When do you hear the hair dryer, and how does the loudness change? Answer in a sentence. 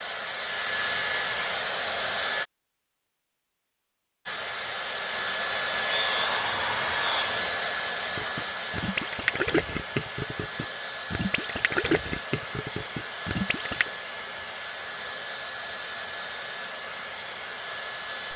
The hair dryer can be heard briefly from 0.0 to 2.5 s; and from 4.2 to 18.3 s, getting quieter.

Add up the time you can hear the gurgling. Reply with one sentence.
The gurgling can be heard for 6 seconds in total.